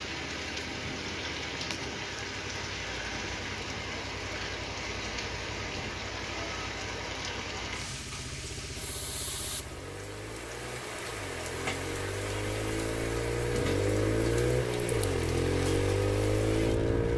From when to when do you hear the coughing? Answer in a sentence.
The coughing can't be heard in this clip.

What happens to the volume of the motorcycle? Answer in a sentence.
The loudness of the motorcycle goes up.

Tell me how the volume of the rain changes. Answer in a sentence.
The volume of the rain stays about the same.